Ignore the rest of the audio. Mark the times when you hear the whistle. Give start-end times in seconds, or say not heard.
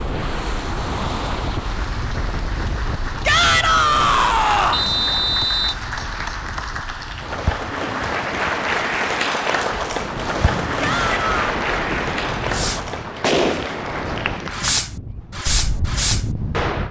4.7-5.8.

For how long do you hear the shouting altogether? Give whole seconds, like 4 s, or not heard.
2 s.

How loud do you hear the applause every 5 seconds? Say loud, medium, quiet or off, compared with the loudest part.
medium, loud, loud, off.